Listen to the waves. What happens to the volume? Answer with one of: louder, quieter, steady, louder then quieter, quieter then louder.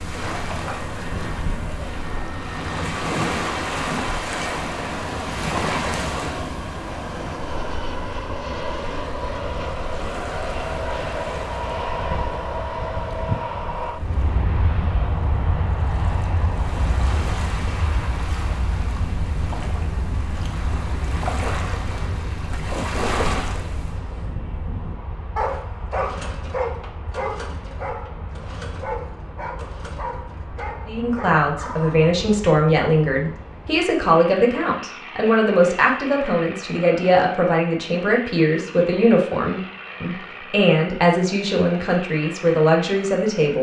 quieter then louder.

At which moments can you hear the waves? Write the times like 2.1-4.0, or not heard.
0.0-24.2.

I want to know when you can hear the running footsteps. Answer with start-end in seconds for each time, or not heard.
not heard.